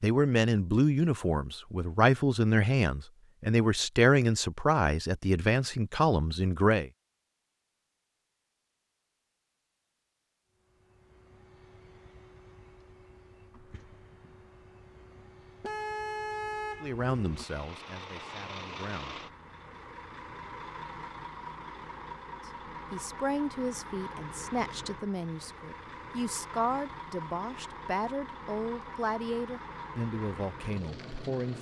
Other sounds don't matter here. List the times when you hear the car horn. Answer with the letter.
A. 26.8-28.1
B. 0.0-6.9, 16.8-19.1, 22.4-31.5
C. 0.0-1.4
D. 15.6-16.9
D.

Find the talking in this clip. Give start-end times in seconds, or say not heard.
0.0-6.9, 16.8-19.1, 22.4-31.5.